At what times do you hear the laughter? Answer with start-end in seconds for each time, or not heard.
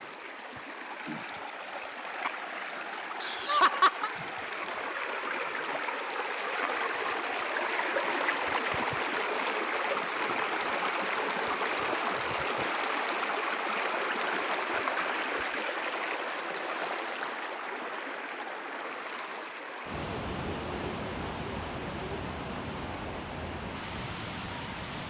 3.2-4.1.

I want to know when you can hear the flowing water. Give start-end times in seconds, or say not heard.
0.0-25.0.